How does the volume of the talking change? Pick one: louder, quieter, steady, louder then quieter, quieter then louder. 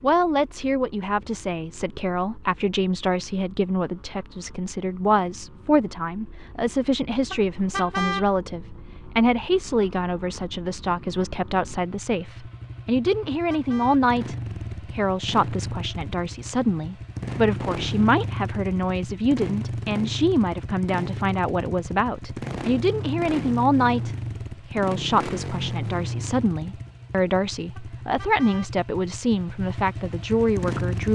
steady.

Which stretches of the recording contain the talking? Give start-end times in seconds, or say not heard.
0.0-31.1.